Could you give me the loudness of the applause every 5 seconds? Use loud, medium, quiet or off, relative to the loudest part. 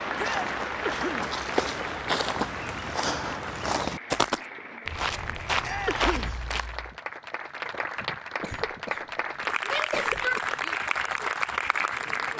medium, medium, loud.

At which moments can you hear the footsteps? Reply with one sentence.
The footsteps can be heard from 0.0 to 7.0 s.